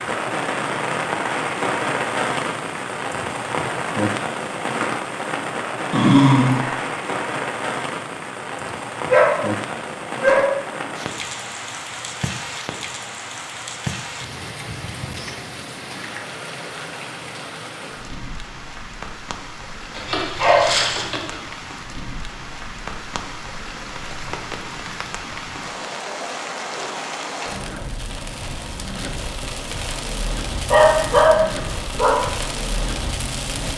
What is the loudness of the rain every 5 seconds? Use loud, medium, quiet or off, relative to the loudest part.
loud, loud, medium, medium, medium, medium, medium.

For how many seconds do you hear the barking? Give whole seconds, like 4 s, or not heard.
5 s.